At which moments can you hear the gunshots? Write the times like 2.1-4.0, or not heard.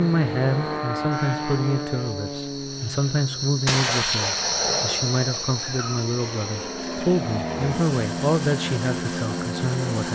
3.6-6.0.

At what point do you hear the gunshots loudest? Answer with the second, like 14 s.
4 s.